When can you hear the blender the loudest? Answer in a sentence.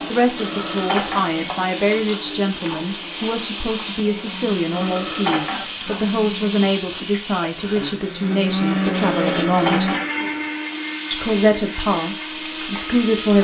The loudest moment of the blender is at 9 seconds.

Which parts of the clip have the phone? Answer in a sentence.
The phone can be heard from 0.3 to 1.4 s, from 4.7 to 6.0 s and from 9.3 to 10.3 s.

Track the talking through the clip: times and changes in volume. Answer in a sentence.
The talking can be heard from 0.1 to 9.9 s, at a steady volume; and briefly from 11.1 to 13.3 s.